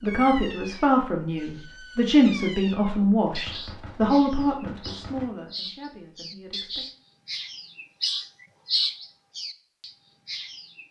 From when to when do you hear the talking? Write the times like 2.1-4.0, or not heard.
0.0-6.8.